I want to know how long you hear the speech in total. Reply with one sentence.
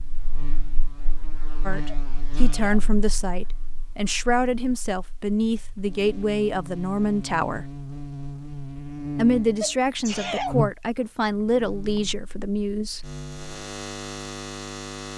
The speech can be heard for 10 seconds in total.